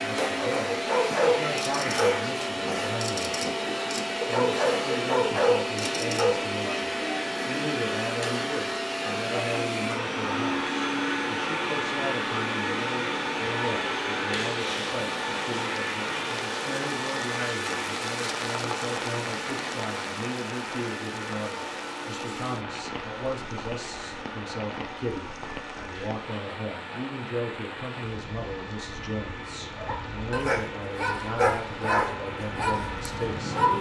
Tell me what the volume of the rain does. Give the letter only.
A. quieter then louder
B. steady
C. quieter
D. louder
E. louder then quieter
C.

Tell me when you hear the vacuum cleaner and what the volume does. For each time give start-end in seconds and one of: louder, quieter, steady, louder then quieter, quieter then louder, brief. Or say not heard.
0.0-33.7 quieter.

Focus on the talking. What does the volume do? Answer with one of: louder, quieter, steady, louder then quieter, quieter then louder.
steady.